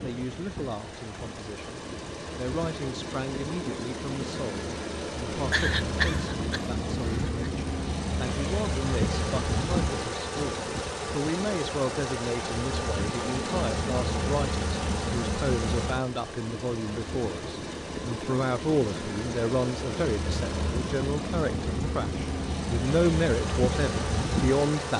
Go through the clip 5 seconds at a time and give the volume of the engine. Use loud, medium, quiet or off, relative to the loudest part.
medium, loud, loud, loud, loud.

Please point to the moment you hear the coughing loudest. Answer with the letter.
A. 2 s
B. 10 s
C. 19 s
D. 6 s
D.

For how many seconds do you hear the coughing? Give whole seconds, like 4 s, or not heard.
2 s.